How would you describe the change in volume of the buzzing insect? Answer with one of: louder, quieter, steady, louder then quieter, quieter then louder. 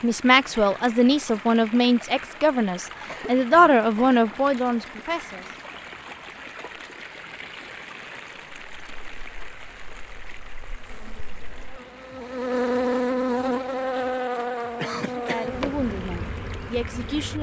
louder then quieter.